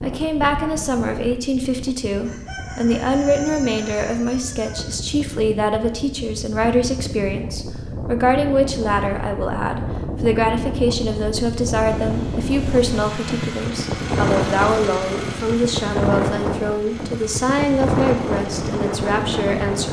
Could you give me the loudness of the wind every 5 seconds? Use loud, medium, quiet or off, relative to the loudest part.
medium, medium, loud, loud.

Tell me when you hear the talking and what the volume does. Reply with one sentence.
You can hear the talking from 0.0 to 19.8 s, at a steady volume.